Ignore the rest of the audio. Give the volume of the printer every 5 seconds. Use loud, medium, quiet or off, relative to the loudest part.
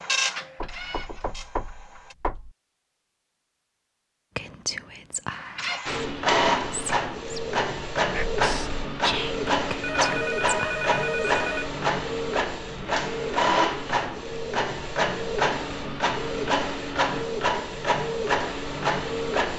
medium, loud, loud, loud.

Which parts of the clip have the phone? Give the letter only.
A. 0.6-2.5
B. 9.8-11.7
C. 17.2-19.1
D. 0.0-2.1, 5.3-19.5
B.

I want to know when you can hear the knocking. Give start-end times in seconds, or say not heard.
0.6-2.5.